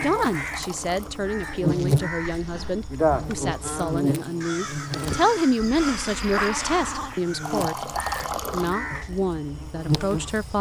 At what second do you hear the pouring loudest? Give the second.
8 s.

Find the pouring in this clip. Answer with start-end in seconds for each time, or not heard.
0.0-1.2, 7.4-8.8.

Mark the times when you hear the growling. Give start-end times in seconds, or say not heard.
2.2-3.3, 5.6-7.2.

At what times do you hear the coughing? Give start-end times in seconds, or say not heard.
not heard.